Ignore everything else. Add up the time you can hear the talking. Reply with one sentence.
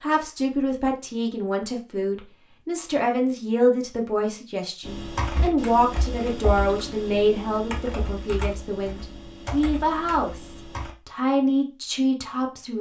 You can hear the talking for 13 seconds altogether.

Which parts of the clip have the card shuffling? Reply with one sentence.
The card shuffling can't be heard in this clip.